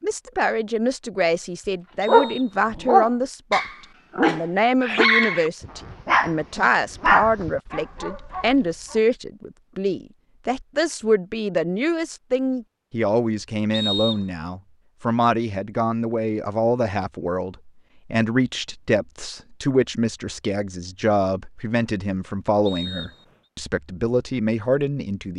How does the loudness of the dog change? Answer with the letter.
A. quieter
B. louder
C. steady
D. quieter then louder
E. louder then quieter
A.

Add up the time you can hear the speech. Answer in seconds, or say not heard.
25 s.